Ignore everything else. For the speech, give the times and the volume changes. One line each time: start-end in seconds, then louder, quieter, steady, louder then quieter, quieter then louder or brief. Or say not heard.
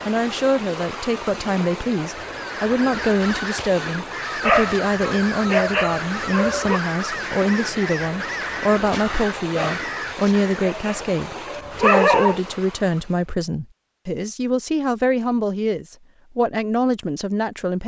0.0-17.8 steady.